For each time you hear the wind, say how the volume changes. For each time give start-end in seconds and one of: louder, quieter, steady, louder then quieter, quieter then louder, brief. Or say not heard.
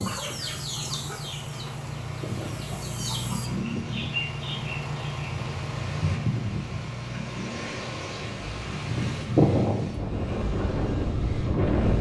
0.0-11.9 louder.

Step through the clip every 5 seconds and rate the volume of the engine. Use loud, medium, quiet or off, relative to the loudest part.
loud, loud, medium.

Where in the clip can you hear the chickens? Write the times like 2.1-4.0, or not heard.
0.0-3.5.